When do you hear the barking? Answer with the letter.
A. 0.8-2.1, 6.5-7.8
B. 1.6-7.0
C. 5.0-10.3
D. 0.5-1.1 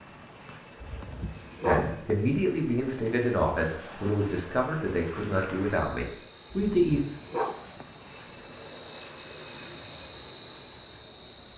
A.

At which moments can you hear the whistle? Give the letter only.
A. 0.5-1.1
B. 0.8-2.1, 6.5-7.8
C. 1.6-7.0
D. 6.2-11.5
A.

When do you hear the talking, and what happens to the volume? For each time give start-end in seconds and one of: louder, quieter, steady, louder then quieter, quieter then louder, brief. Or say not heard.
1.6-7.0 steady.